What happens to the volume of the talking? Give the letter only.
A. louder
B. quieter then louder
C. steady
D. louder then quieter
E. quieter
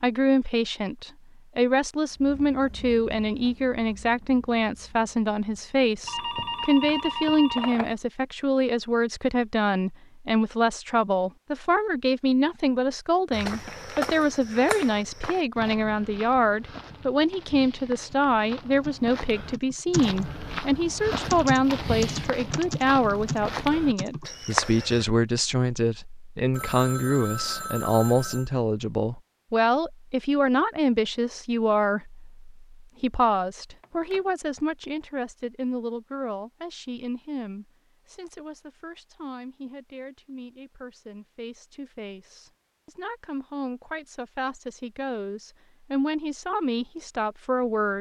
E.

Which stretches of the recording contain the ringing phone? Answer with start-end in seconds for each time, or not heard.
6.0-8.0, 26.5-28.5, 33.8-34.2.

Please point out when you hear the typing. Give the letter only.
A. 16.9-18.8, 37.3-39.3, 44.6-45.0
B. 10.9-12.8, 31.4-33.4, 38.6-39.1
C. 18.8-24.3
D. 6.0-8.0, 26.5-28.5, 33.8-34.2
C.